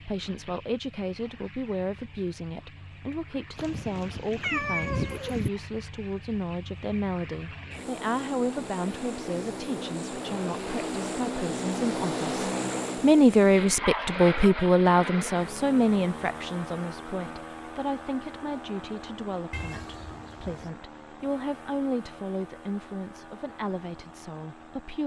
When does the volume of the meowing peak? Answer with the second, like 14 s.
5 s.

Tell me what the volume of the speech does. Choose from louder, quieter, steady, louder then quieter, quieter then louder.
louder then quieter.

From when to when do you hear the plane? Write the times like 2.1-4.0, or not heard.
0.0-25.0.